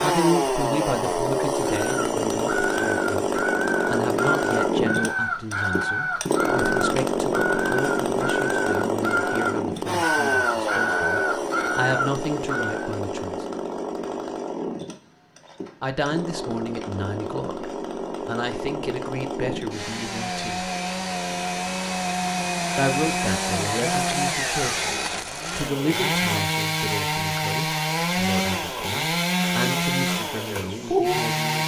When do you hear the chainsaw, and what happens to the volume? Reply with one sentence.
You can hear the chainsaw from 0.0 to 31.6 s, getting quieter then louder.